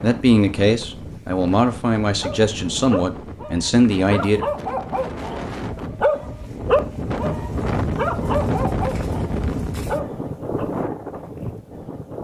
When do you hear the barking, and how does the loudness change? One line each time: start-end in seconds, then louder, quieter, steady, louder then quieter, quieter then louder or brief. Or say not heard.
2.2-10.7 louder then quieter.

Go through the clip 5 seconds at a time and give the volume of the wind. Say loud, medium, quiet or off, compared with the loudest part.
medium, loud, loud.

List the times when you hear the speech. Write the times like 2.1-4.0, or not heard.
0.0-4.5.